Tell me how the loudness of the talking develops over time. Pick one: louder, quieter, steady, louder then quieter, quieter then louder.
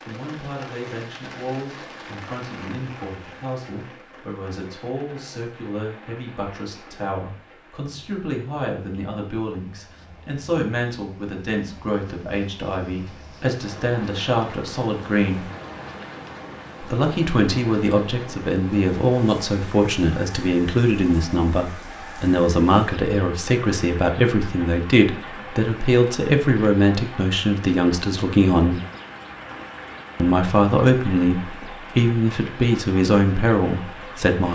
louder.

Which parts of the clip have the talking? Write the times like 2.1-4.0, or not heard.
0.1-15.5, 16.8-28.8, 30.1-34.5.